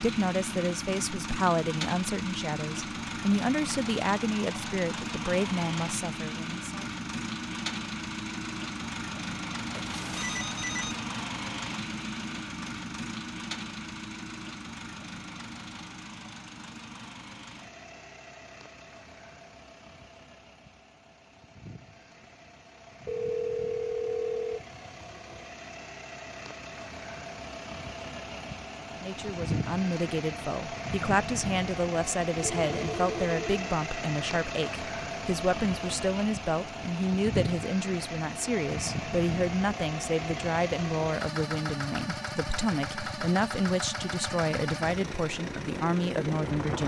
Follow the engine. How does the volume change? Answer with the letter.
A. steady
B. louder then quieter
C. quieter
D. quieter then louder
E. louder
D.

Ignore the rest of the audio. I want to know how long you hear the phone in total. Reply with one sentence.
The phone can be heard for 4 seconds in total.